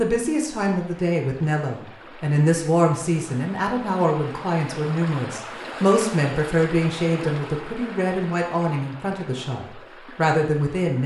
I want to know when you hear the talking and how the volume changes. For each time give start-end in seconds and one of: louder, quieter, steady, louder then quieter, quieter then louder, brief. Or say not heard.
0.0-11.0 steady.